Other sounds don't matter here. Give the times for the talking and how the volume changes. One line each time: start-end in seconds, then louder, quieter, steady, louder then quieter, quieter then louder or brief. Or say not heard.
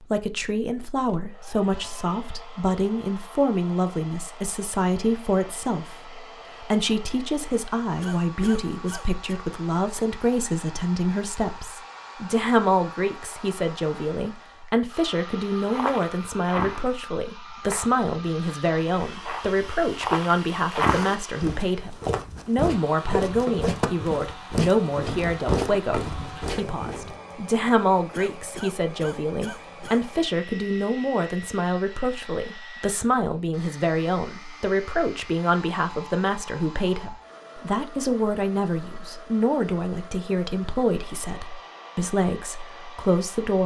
0.0-43.6 steady.